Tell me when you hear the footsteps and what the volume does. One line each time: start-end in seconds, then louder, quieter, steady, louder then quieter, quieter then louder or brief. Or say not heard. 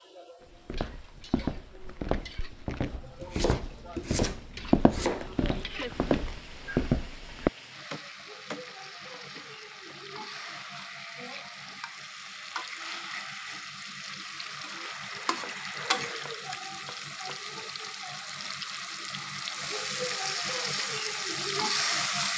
0.5-7.5 louder.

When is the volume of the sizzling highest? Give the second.
22 s.